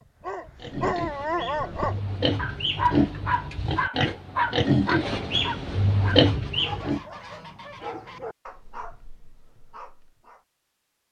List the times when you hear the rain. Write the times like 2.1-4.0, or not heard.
not heard.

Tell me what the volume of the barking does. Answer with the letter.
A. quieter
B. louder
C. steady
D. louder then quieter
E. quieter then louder
A.